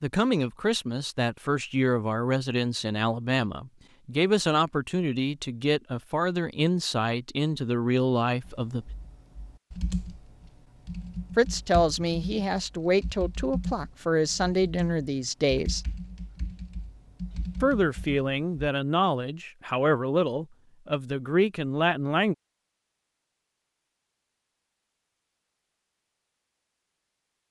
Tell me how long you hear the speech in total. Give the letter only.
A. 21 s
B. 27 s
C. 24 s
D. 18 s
D.